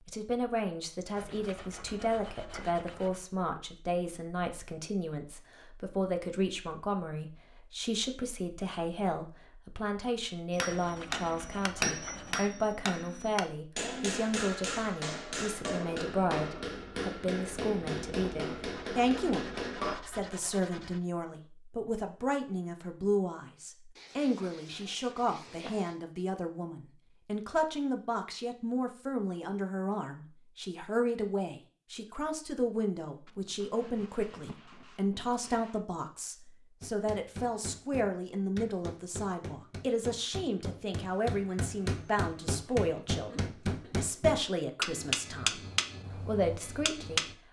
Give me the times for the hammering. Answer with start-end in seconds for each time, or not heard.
10.5-19.9, 36.8-47.4.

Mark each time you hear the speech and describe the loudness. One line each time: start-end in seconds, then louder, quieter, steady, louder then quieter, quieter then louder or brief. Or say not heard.
0.1-47.2 steady.